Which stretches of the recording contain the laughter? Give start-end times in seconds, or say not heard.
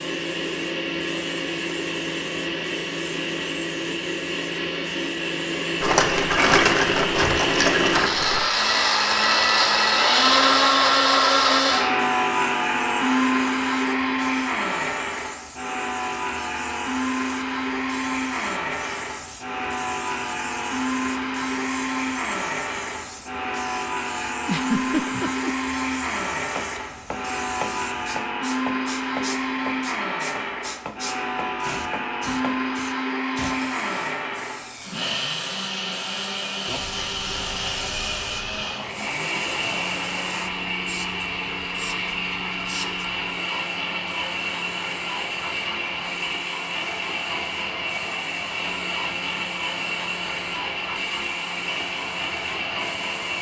24.4-25.5.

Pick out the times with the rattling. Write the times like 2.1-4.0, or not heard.
5.8-8.4.